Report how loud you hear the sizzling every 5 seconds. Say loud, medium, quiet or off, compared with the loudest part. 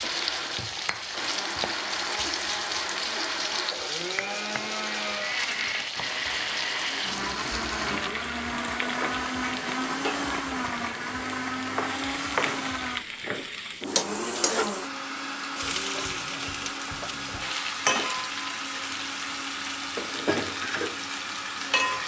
loud, medium, loud, loud, loud.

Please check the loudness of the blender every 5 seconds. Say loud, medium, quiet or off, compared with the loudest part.
loud, loud, loud, medium, medium.